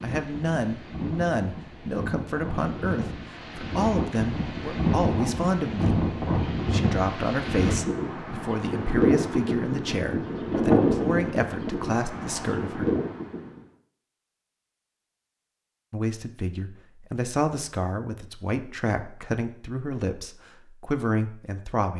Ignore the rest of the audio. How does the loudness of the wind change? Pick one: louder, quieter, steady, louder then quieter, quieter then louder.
louder.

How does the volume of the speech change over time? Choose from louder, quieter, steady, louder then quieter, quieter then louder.
steady.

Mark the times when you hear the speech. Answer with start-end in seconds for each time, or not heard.
0.0-12.9, 15.9-21.9.